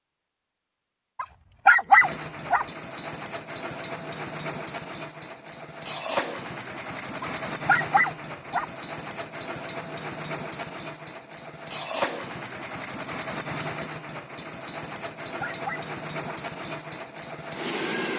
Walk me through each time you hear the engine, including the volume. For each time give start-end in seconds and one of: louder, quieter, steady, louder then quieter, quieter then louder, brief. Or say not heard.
2.0-18.1 steady.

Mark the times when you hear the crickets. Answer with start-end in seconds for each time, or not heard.
not heard.